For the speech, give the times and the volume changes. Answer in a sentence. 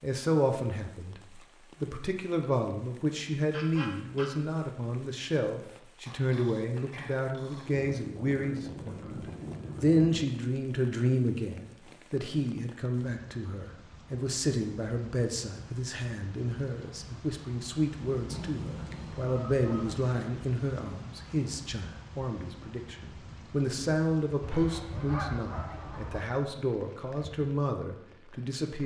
You can hear the speech from 0.0 to 9.2 s, at a steady volume; and from 9.8 to 28.8 s, at a steady volume.